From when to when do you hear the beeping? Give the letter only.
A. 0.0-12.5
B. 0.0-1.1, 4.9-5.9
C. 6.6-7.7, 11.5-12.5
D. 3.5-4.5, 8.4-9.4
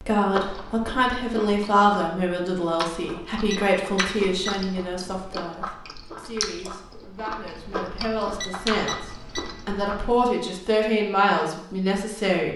D.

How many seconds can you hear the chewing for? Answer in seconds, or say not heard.
10 s.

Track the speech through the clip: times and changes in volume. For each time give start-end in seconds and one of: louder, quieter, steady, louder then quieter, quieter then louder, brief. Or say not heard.
0.0-12.5 quieter then louder.